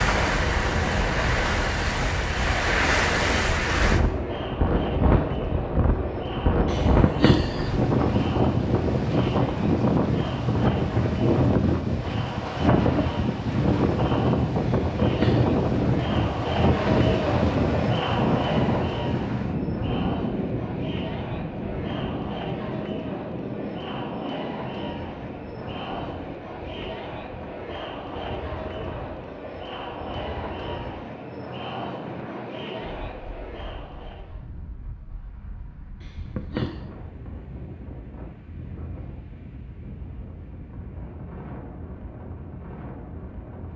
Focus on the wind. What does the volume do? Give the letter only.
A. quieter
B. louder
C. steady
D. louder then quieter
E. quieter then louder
A.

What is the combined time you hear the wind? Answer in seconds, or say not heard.
44 s.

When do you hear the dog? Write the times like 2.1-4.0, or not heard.
not heard.